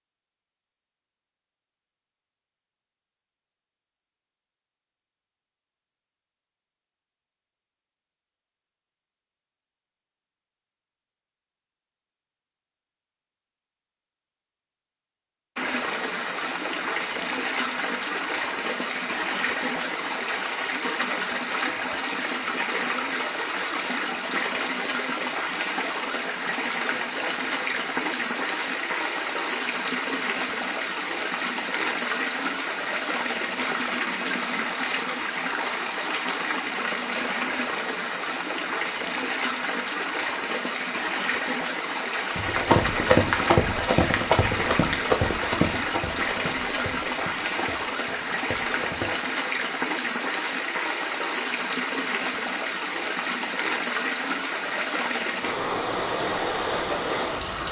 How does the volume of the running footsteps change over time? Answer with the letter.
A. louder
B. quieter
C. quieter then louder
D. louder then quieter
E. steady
B.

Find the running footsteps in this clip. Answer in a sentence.
The running footsteps can be heard from 42.4 to 49.3 s.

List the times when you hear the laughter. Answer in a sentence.
You can't hear the laughter here.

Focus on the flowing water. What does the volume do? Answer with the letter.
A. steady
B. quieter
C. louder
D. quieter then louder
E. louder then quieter
A.